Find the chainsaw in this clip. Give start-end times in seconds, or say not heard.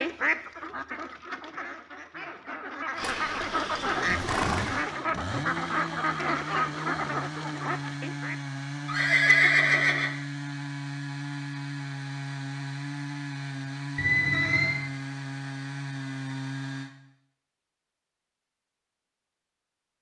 2.9-16.9.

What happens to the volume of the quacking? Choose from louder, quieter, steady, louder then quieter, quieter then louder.
louder.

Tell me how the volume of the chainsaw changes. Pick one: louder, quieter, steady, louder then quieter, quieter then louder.
steady.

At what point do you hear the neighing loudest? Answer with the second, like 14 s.
9 s.